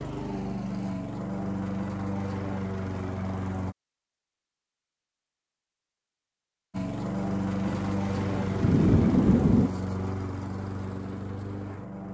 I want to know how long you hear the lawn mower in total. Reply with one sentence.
You can hear the lawn mower for 9 seconds altogether.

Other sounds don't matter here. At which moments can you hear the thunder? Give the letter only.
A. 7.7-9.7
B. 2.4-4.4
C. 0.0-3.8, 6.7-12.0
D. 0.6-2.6
A.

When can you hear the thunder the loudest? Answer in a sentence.
The loudest moment of the thunder is at 9 seconds.